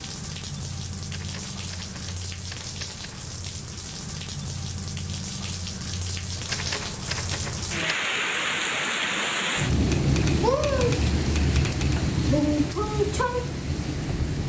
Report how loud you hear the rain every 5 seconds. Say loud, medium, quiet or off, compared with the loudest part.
medium, loud, loud.